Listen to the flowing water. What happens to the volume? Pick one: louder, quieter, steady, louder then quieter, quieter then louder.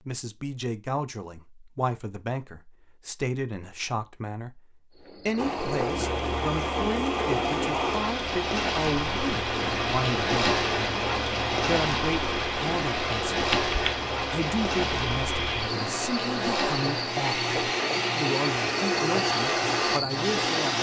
steady.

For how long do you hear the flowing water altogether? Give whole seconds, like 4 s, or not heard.
15 s.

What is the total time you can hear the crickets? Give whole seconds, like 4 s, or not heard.
16 s.